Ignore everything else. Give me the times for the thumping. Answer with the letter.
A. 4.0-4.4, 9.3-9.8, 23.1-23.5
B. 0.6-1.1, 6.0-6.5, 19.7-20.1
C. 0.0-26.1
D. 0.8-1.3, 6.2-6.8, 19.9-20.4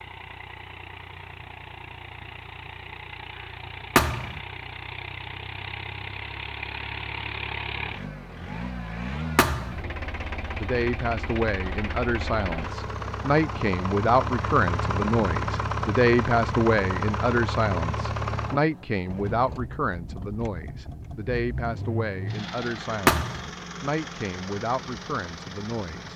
A.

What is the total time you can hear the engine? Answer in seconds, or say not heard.
26 s.